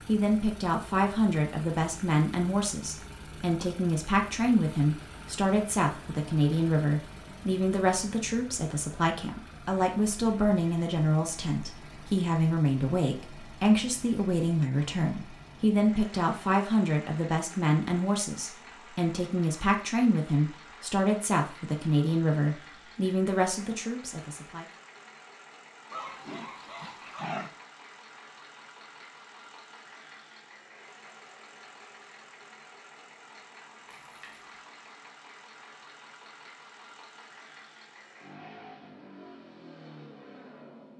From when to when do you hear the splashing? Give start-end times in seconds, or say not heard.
33.9-34.5.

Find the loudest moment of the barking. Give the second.
27 s.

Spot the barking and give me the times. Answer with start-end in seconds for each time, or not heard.
25.9-27.6.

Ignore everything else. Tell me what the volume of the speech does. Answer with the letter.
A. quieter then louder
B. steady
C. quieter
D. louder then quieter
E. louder
B.